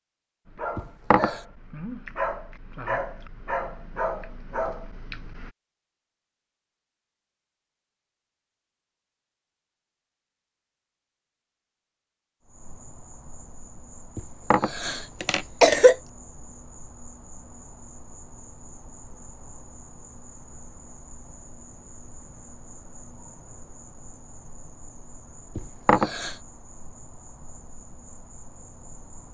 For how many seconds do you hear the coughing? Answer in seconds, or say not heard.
3 s.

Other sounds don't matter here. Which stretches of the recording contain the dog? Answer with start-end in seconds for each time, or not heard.
0.5-5.5.